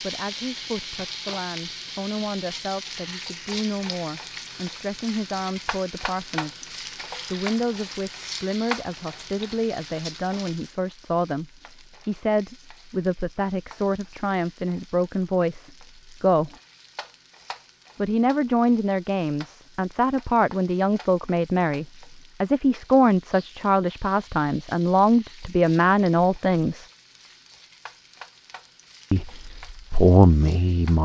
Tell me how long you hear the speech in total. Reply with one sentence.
You can hear the speech for 27 seconds altogether.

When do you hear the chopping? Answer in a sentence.
You can't hear the chopping here.